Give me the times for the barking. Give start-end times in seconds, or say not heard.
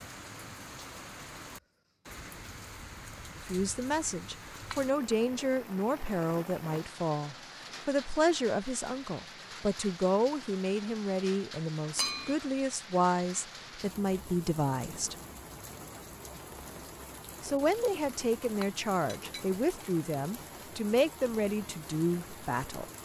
not heard.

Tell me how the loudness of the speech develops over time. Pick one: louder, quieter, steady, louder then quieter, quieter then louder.
steady.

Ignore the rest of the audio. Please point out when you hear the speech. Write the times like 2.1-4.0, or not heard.
3.5-15.2, 17.4-22.9.